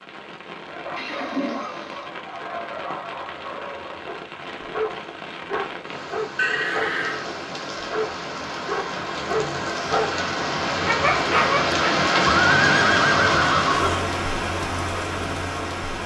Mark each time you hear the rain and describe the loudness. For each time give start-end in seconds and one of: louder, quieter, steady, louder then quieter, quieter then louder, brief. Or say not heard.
0.0-16.0 louder.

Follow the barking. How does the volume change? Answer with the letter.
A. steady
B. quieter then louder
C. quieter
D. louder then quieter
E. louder
E.